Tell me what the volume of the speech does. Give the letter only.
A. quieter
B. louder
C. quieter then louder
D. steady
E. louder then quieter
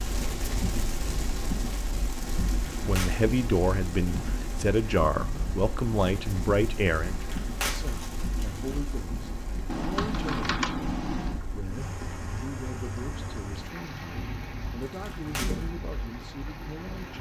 A.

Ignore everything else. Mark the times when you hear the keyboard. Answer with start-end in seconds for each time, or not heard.
9.7-11.4.